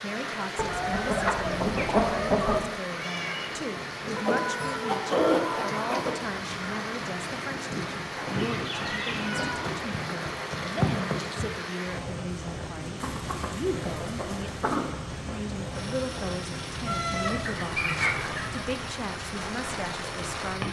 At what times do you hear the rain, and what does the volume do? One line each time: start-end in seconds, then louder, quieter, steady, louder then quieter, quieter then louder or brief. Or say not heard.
0.0-20.6 steady.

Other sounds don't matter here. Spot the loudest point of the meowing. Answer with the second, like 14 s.
17 s.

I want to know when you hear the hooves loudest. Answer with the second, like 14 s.
11 s.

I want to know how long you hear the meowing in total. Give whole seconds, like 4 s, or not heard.
3 s.